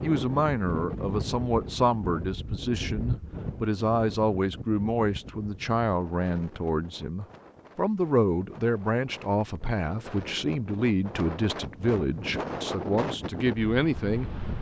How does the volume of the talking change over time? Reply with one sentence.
The volume of the talking stays about the same.